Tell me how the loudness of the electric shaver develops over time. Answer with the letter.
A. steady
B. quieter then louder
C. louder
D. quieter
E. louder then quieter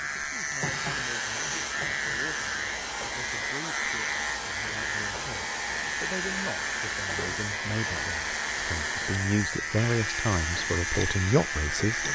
A.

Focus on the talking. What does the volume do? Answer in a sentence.
The volume of the talking goes up.